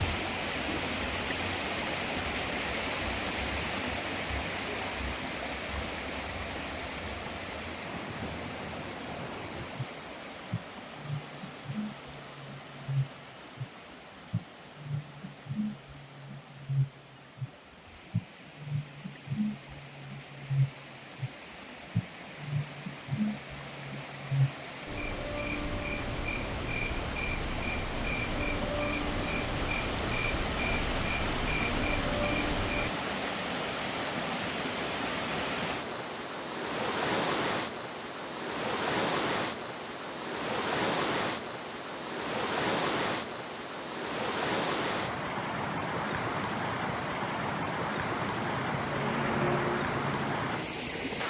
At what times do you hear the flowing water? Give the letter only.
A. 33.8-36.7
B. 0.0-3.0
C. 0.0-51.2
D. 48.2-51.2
C.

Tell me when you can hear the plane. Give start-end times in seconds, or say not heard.
48.2-51.2.